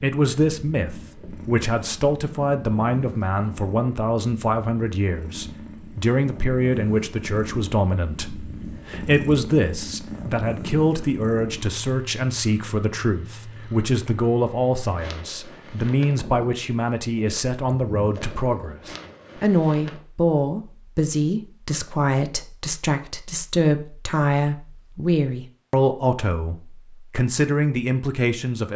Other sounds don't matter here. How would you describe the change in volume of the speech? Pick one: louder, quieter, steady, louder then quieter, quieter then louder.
steady.